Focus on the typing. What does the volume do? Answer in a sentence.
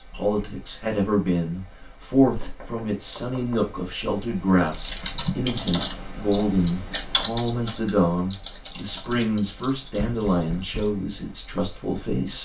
The loudness of the typing goes down.